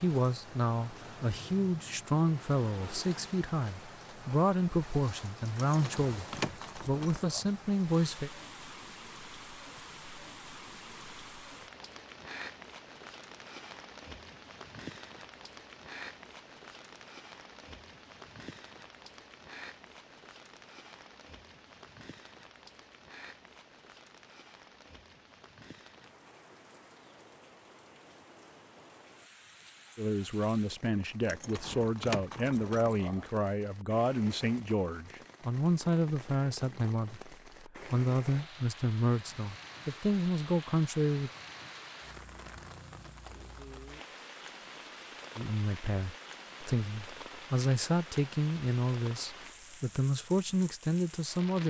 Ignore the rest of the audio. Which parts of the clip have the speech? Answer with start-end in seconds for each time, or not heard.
0.0-8.3, 29.9-41.3, 45.4-51.6.